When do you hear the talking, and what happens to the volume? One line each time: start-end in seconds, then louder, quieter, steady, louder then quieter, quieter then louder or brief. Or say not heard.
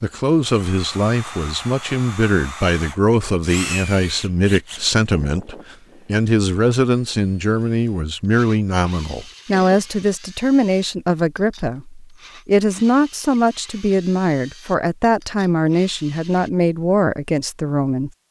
0.0-18.2 steady.